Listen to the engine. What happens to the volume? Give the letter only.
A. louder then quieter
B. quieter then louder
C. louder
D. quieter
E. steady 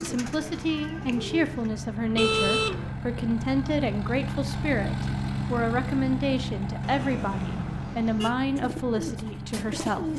A.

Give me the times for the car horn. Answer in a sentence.
You can hear the car horn from 2.1 to 3.0 s and from 6.8 to 8.4 s.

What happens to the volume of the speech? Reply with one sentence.
The volume of the speech stays about the same.